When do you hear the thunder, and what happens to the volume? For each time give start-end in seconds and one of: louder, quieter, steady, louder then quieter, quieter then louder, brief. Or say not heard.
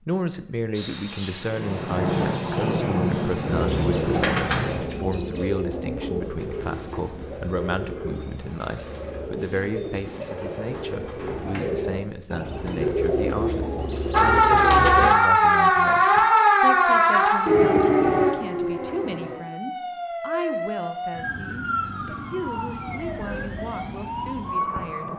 0.7-4.8 louder.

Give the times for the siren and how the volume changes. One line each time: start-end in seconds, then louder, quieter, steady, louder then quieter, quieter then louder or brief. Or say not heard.
14.1-25.1 quieter.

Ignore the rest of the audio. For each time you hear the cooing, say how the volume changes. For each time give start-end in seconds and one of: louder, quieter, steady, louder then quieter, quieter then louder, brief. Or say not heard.
3.5-15.2 quieter then louder.